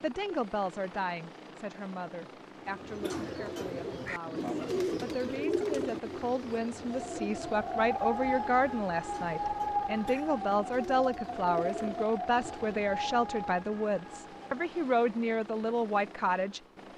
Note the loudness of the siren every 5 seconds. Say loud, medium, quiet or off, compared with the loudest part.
off, loud, medium, off.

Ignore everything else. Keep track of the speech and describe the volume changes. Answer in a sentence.
The loudness of the speech goes up.